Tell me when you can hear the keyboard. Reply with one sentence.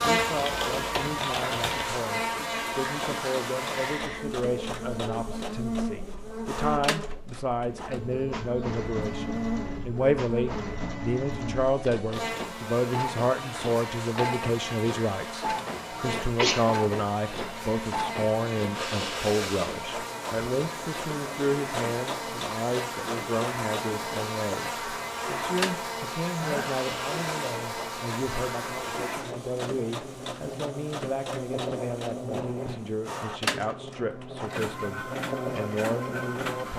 The keyboard can be heard from 0.0 to 1.9 s.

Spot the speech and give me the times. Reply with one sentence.
The speech can be heard from 0.0 to 36.7 s.